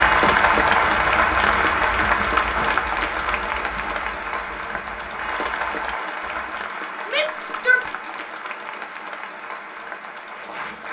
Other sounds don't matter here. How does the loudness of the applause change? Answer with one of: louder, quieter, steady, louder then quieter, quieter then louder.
quieter.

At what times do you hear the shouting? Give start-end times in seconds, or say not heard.
7.0-8.1.